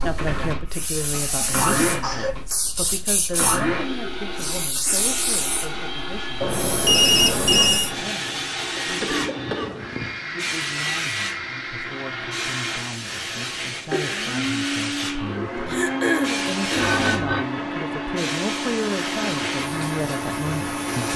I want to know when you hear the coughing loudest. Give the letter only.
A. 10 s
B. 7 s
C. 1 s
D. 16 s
D.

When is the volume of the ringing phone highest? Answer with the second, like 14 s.
7 s.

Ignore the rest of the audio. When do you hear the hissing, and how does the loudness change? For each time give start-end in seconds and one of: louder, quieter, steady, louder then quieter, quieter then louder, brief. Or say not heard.
0.0-21.1 steady.